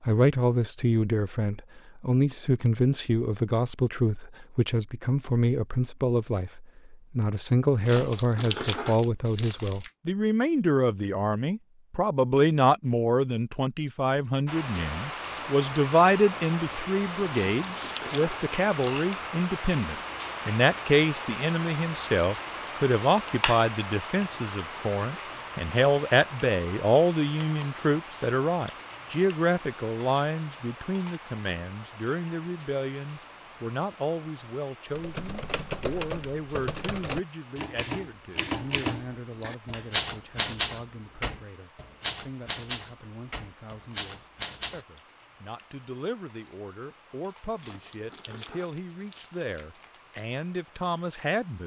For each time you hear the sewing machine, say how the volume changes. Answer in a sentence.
You can't hear the sewing machine here.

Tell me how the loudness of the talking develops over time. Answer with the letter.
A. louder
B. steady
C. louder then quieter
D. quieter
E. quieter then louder
D.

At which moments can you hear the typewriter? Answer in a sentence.
You can hear the typewriter from 34.9 to 44.9 s.